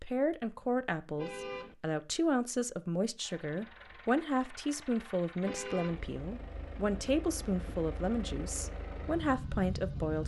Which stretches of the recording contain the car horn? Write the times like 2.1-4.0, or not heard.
1.1-1.8, 5.4-6.0.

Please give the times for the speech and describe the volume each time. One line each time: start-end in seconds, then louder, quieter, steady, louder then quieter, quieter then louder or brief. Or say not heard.
0.0-10.2 steady.